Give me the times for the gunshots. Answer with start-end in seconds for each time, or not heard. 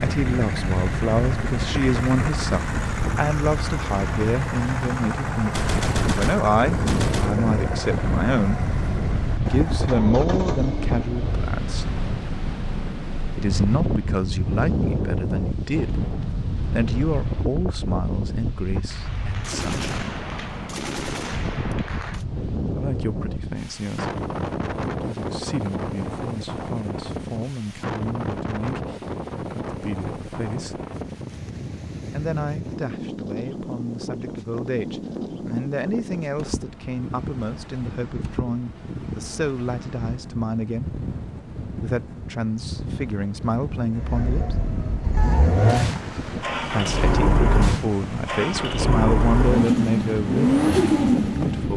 5.5-7.3, 18.9-22.2, 45.1-47.1.